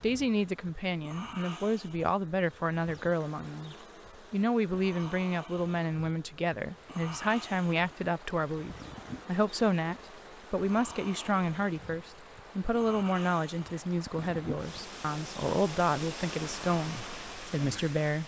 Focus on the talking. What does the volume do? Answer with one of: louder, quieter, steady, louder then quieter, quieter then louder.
steady.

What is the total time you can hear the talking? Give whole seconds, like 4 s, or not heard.
18 s.